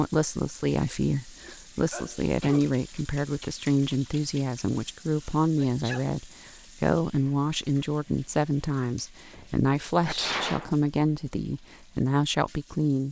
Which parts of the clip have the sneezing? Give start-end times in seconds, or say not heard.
1.9-2.6, 5.4-6.5, 10.1-10.7.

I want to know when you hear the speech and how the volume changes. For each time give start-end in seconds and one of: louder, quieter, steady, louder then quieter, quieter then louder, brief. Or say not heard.
0.0-13.0 steady.